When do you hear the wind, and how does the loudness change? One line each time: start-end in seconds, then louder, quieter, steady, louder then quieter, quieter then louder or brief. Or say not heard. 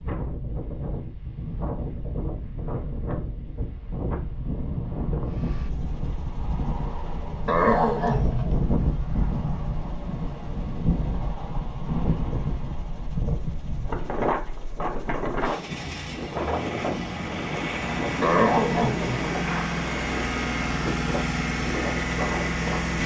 0.0-22.9 steady.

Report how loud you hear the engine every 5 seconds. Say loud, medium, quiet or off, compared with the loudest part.
off, quiet, quiet, loud, loud.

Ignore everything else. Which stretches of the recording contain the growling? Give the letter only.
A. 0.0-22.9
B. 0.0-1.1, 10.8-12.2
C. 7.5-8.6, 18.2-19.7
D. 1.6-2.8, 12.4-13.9
C.